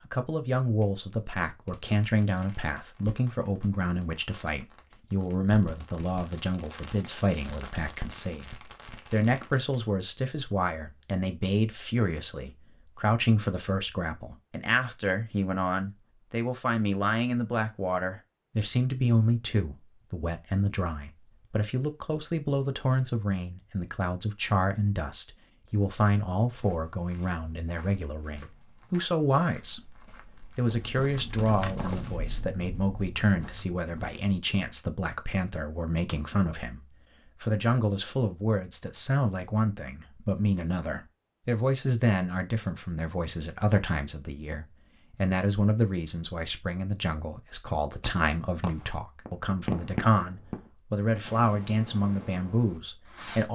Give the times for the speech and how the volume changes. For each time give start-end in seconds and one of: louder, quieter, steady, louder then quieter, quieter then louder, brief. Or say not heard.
0.1-53.4 steady.